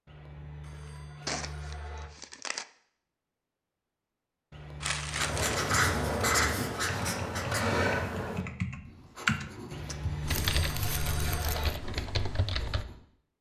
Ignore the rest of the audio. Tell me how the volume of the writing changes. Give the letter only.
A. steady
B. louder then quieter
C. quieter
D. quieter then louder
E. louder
C.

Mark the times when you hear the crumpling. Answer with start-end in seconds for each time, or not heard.
1.2-2.6, 4.8-5.7, 10.2-11.8.